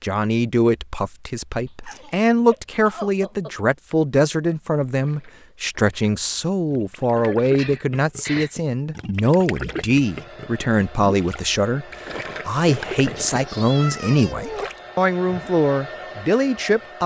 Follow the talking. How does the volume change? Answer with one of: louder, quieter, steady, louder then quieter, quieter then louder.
steady.